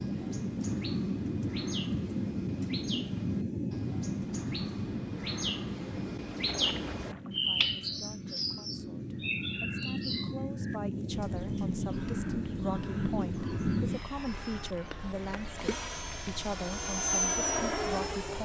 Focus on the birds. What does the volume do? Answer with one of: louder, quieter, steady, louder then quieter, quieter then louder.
louder then quieter.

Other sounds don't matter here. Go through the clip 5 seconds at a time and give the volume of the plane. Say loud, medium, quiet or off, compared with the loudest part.
loud, medium, loud, loud.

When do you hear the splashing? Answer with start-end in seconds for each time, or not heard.
6.5-7.4, 15.6-16.4.